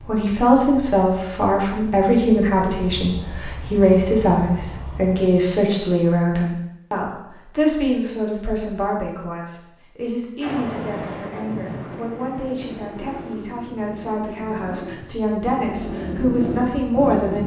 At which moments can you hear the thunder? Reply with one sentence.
You can hear the thunder from 10.4 to 13.3 s.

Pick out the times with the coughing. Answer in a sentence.
You can't hear the coughing here.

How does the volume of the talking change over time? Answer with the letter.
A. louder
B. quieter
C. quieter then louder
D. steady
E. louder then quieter
C.